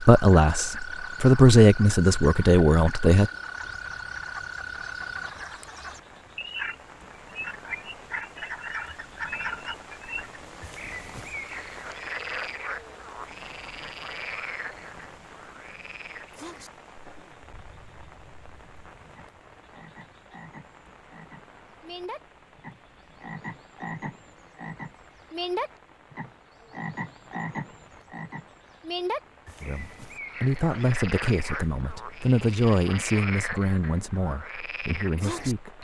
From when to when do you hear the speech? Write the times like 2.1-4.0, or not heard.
0.0-3.3, 29.6-35.7.